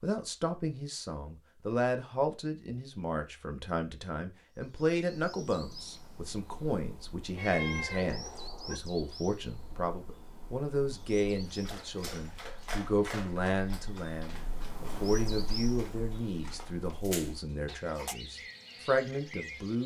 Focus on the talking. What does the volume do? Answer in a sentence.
The volume of the talking stays about the same.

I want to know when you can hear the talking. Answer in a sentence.
You can hear the talking from 0.0 to 19.8 s.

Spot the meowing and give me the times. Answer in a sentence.
You can hear the meowing from 7.3 to 8.8 s.